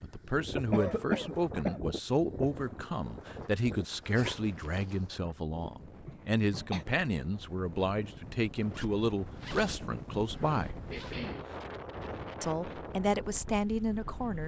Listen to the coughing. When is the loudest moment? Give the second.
1 s.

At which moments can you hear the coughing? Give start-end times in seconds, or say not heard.
0.7-1.8, 6.0-6.8, 10.9-11.4.